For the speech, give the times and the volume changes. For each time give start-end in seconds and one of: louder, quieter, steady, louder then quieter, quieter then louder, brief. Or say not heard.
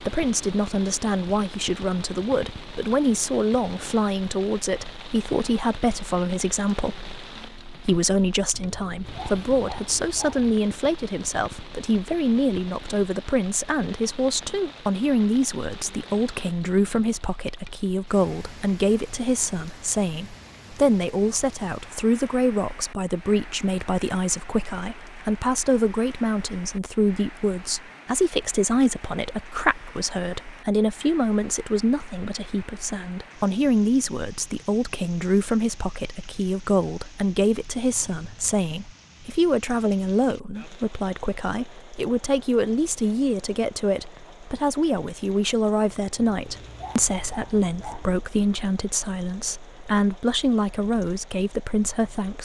0.0-52.4 steady.